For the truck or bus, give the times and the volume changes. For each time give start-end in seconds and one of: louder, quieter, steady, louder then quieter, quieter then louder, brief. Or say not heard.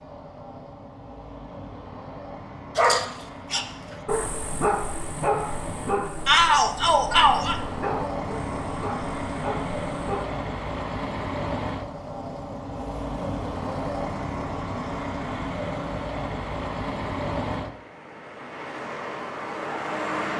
0.0-20.3 louder.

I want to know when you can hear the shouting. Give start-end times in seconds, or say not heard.
6.2-7.6.